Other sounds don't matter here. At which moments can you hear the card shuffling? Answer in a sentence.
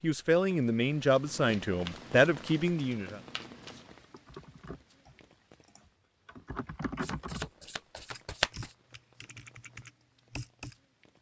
The card shuffling can be heard from 1.2 to 3.9 s and from 7.0 to 8.8 s.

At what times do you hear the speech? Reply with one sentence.
The speech can be heard from 0.0 to 3.2 s.